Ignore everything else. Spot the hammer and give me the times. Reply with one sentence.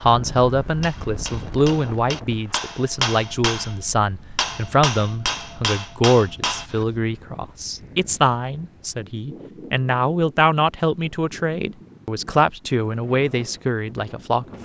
You can hear the hammer from 0.8 to 6.8 s.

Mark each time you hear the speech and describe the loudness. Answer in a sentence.
The speech can be heard from 0.0 to 14.4 s, at a steady volume.